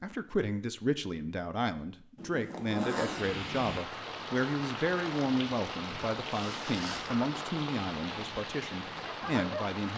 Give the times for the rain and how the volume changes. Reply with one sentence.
You can hear the rain from 3.1 to 9.9 s, at a steady volume.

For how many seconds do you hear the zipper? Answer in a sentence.
You can hear the zipper for 2 seconds altogether.